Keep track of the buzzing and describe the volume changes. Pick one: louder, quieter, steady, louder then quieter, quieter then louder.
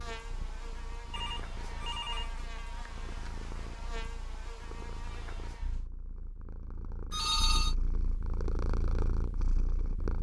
steady.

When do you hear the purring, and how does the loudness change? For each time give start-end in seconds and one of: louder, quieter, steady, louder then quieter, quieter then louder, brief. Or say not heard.
0.0-10.1 louder.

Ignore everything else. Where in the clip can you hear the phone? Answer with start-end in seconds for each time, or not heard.
1.1-2.5, 7.1-7.8.